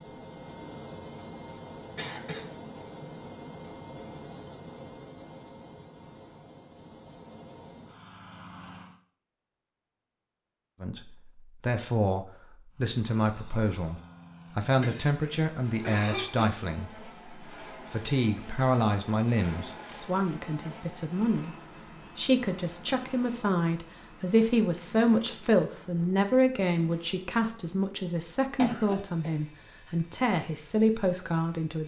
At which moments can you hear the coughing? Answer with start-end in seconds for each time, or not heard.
1.9-2.5, 14.8-16.5, 28.6-29.4.